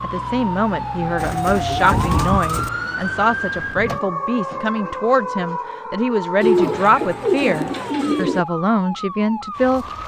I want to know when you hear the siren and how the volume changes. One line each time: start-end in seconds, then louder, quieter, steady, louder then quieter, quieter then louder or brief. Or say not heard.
0.0-10.0 quieter.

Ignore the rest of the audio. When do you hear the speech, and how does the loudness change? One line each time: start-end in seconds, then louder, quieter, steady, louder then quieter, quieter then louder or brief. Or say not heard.
0.0-9.8 steady.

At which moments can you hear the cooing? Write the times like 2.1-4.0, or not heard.
1.1-2.7, 6.4-8.4.